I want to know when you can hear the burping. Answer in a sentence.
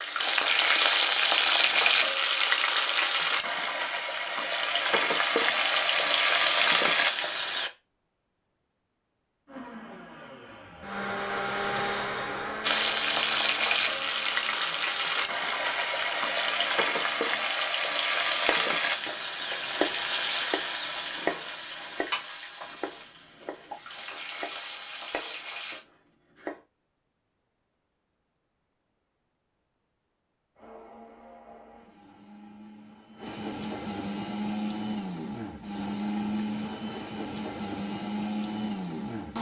You can't hear the burping here.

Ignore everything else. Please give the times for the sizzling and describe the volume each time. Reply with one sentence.
The sizzling can be heard from 0.0 to 7.7 s, getting quieter then louder; and from 12.6 to 25.8 s, getting quieter.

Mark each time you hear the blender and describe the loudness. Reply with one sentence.
The blender can be heard from 9.4 to 17.6 s, getting louder then quieter; and from 30.6 to 39.3 s, getting louder.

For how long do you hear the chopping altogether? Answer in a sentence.
The chopping can be heard for 8 seconds in total.